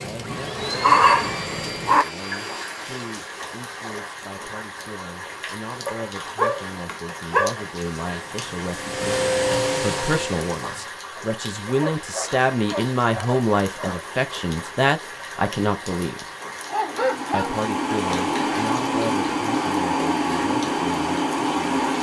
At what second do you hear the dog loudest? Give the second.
1 s.